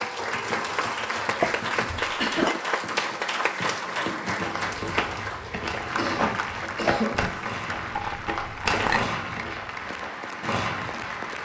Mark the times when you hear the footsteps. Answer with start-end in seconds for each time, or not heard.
4.4-10.1.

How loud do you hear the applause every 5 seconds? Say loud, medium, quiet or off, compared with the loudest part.
loud, medium, medium.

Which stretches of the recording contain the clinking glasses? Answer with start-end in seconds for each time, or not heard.
1.4-2.6, 8.0-9.1.